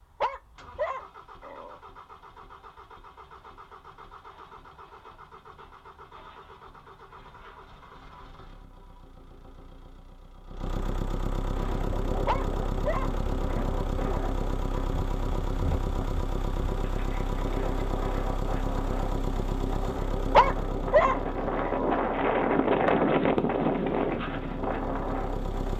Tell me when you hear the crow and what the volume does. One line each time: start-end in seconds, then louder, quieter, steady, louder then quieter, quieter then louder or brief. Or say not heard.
not heard.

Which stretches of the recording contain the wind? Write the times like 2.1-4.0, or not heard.
11.5-25.7.